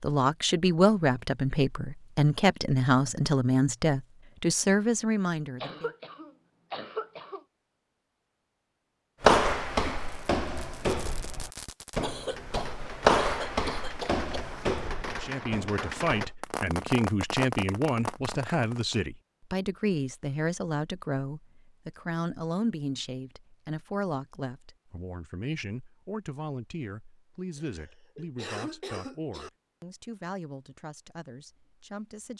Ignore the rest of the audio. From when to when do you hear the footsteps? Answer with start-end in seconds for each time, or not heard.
9.2-16.4.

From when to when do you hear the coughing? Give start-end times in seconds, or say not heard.
5.6-7.4, 12.0-14.2, 27.6-29.5.